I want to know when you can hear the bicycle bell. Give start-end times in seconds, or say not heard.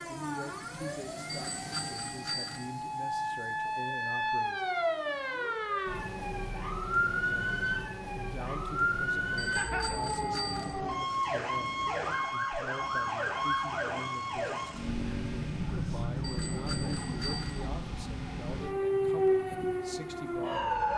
1.2-2.7, 9.3-10.8, 16.2-17.7.